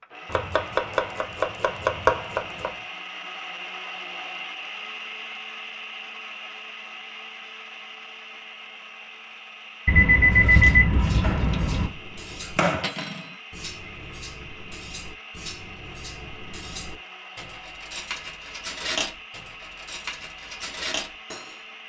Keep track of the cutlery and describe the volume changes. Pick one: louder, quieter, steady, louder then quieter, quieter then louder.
louder.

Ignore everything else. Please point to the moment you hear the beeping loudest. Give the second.
11 s.